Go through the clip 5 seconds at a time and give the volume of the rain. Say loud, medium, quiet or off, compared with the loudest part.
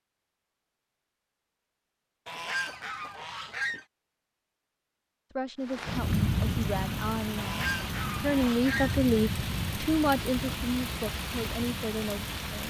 off, loud, loud.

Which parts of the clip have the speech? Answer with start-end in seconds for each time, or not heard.
5.3-12.6.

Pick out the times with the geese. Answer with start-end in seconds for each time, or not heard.
2.2-3.9, 7.3-8.9.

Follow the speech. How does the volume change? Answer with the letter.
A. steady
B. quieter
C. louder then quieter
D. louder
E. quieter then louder
C.